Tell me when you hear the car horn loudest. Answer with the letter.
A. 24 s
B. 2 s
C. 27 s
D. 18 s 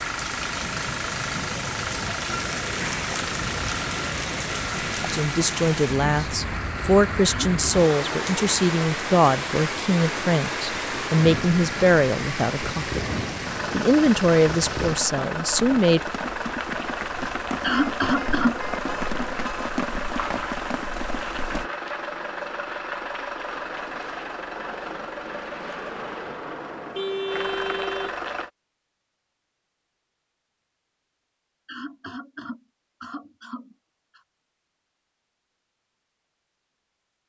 C.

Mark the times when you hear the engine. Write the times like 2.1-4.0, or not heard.
0.0-28.5.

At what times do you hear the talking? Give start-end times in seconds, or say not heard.
5.1-13.0, 13.7-16.0.